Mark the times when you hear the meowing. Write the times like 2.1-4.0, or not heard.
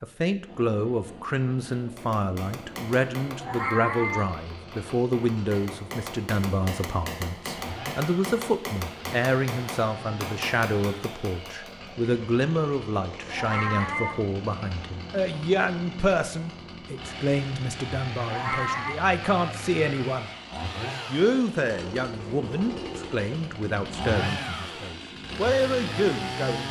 3.4-4.3, 13.3-14.2, 18.2-18.9.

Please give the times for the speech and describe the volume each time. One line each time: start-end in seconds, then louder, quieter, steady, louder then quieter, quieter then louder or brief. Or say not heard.
0.0-20.3 steady
21.1-26.6 quieter then louder.